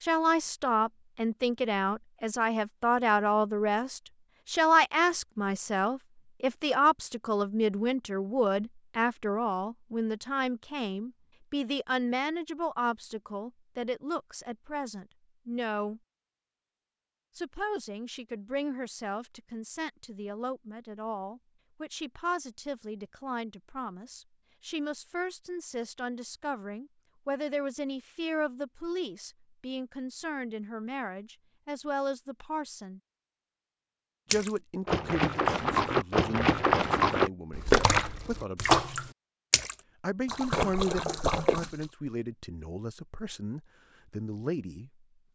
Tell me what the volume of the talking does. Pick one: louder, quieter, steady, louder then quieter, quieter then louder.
quieter.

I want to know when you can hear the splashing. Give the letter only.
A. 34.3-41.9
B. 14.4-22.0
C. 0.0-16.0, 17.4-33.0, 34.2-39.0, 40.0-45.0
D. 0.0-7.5
A.